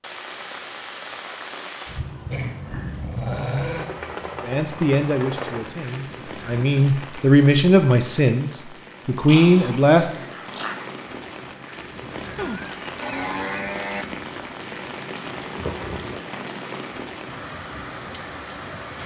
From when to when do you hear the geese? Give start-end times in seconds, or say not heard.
not heard.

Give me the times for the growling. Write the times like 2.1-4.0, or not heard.
2.3-3.9, 9.2-10.9, 15.6-16.2.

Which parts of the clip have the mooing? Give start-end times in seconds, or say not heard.
12.3-14.1.